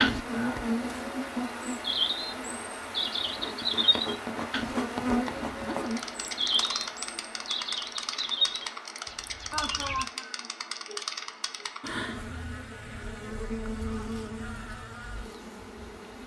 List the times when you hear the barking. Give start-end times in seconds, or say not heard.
not heard.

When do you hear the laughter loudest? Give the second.
10 s.